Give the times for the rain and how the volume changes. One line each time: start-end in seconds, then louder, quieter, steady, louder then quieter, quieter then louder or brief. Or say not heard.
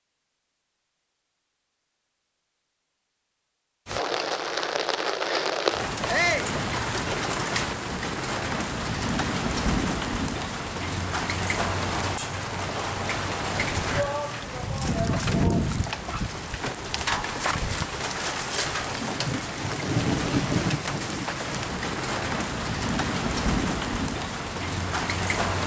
3.9-25.6 steady.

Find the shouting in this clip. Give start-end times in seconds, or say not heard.
6.0-6.5, 13.9-15.7.